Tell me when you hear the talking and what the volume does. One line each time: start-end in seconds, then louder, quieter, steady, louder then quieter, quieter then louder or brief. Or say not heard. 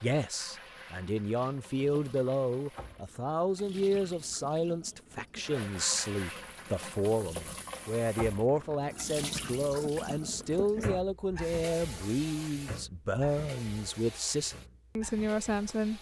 0.0-15.9 steady.